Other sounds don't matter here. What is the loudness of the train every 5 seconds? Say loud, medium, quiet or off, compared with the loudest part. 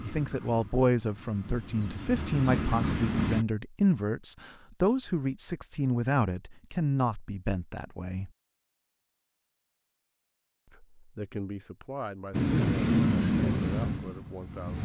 medium, off, loud.